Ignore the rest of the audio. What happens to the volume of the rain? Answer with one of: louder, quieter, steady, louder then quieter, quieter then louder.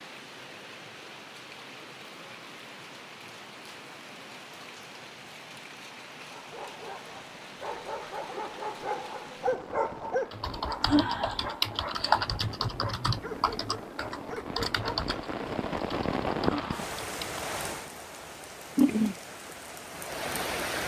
louder.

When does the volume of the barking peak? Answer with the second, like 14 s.
10 s.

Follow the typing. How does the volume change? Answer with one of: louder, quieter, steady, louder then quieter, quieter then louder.
quieter.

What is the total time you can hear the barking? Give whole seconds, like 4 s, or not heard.
9 s.